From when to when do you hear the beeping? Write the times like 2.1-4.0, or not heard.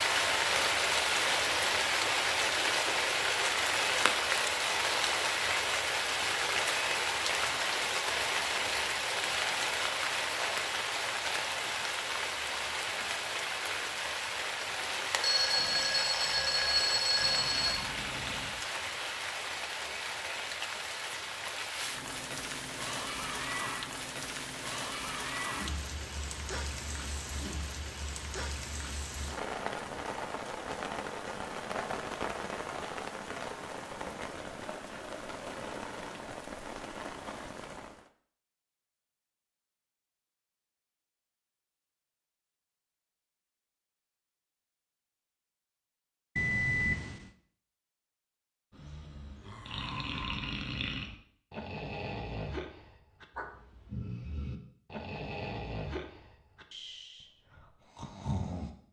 15.2-17.9, 46.4-47.3.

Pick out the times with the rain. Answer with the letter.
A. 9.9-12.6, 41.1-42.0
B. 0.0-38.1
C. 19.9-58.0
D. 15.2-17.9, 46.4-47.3
B.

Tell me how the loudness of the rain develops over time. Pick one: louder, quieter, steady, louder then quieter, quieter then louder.
quieter.